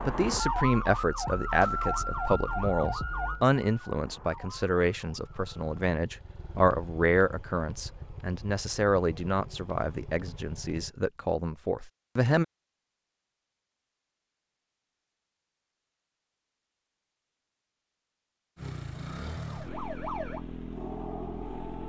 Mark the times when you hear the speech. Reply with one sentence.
The speech can be heard from 0.1 to 12.4 s.